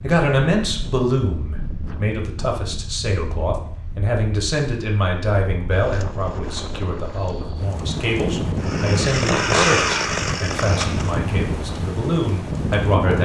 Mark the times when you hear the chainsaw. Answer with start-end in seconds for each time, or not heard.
8.6-11.2.